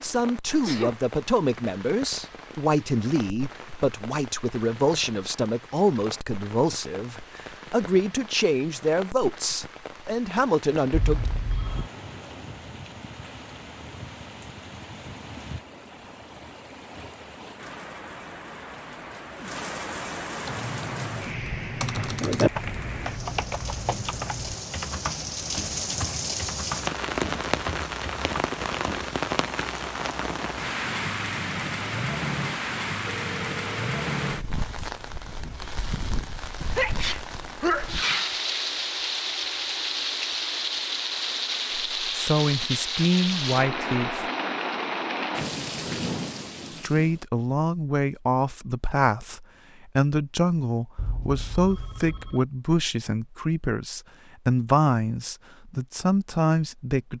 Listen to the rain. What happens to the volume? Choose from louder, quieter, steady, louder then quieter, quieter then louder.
louder.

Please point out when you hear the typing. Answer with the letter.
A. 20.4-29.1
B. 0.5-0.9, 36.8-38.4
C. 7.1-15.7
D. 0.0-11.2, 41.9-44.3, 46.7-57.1
A.